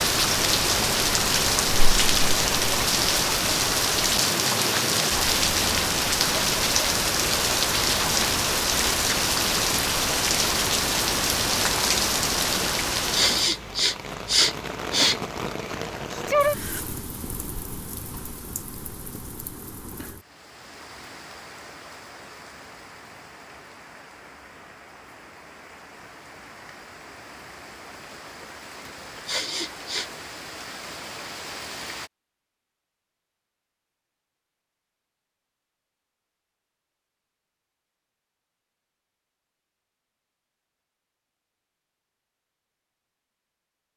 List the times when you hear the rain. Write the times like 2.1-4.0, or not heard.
0.0-32.1.